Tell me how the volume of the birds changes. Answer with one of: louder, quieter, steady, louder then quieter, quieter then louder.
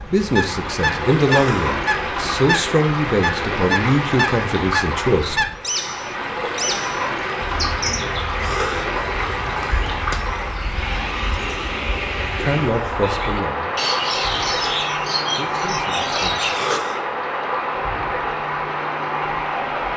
quieter then louder.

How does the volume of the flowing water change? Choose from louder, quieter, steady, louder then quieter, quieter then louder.
steady.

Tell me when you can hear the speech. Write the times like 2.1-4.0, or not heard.
0.1-5.5, 12.4-13.8, 15.3-16.4.